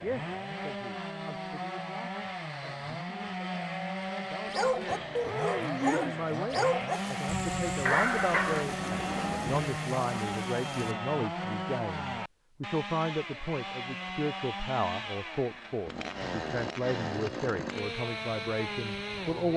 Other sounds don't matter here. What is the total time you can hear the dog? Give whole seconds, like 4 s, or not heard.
4 s.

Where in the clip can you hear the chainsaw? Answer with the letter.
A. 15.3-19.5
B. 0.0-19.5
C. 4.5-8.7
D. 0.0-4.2
B.